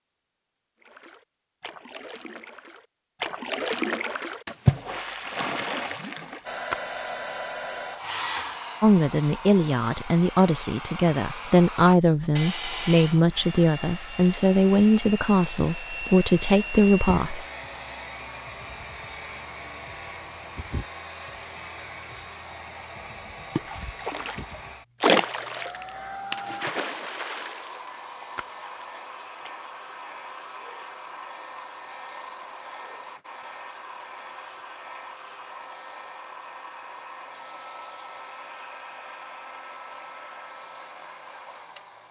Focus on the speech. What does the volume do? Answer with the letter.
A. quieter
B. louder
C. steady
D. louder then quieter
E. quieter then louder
C.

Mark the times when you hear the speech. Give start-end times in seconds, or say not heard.
8.8-17.4.